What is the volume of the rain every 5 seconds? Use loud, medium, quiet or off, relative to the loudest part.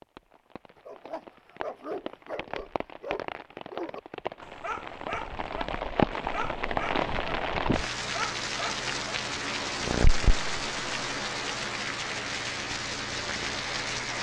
medium, loud, loud.